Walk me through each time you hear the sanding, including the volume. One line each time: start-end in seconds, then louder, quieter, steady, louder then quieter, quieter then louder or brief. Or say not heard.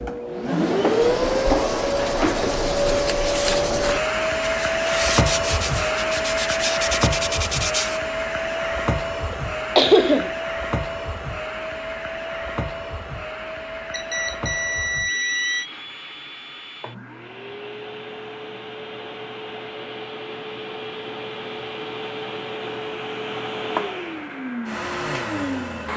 1.0-8.0 louder.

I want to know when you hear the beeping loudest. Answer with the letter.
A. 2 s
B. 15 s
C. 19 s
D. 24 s
B.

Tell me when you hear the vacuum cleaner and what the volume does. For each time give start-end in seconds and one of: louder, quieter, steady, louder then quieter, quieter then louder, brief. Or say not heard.
0.0-25.9 quieter then louder.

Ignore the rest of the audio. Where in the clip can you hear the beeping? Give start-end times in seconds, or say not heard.
13.9-15.7.